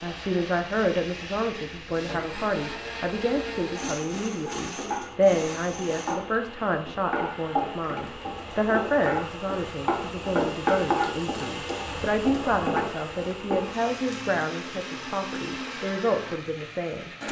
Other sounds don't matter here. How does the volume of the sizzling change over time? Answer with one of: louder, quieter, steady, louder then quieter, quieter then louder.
louder then quieter.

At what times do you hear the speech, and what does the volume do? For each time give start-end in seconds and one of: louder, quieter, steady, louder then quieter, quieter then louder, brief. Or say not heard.
0.0-17.1 steady.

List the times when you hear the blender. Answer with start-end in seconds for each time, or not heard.
0.0-6.2, 13.5-17.2.